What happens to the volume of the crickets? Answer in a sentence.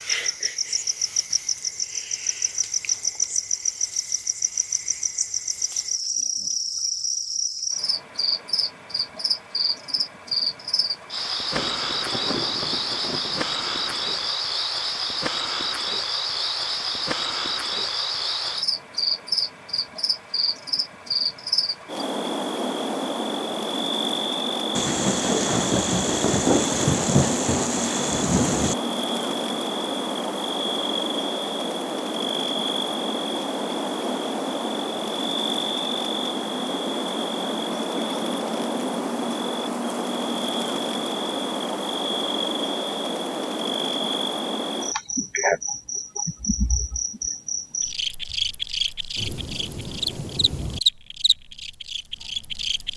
The volume of the crickets stays about the same.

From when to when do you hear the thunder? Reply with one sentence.
The thunder can be heard from 11.6 to 14.3 s, from 24.8 to 28.8 s and from 49.1 to 50.8 s.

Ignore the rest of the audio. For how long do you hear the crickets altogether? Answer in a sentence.
The crickets can be heard for 53 seconds in total.